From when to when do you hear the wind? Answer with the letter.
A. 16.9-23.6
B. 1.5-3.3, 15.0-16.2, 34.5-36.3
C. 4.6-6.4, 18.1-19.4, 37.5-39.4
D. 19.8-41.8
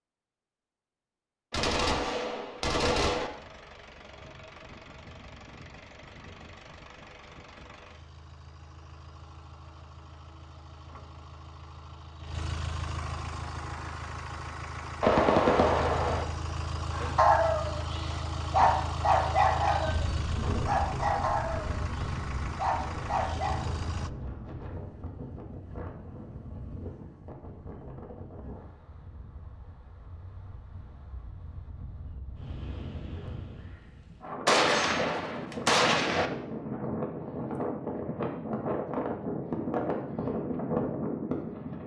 D.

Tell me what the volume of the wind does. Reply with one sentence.
The loudness of the wind goes down, then up.